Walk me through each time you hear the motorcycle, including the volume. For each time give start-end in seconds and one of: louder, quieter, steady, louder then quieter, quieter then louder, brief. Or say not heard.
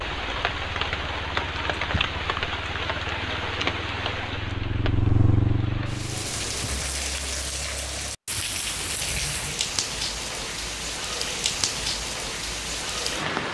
0.1-6.6 louder.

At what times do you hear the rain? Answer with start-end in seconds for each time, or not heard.
0.0-13.5.